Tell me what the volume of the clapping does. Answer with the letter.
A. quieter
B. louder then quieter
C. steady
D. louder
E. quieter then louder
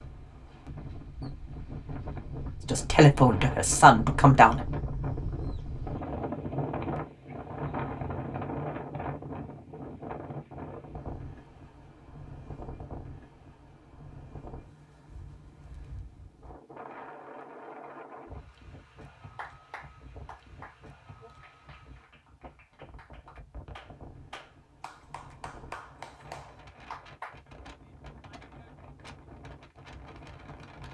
E.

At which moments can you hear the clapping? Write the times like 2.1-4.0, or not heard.
19.4-27.4.